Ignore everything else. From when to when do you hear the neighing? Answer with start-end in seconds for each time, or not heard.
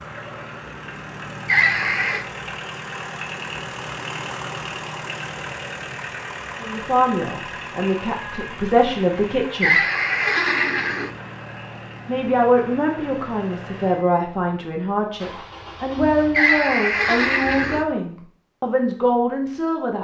1.4-2.2, 9.6-11.1, 16.4-17.9.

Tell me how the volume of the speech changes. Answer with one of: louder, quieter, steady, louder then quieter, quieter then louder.
steady.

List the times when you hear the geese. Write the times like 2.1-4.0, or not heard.
not heard.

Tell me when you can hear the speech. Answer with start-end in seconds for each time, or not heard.
6.6-9.8, 12.1-20.0.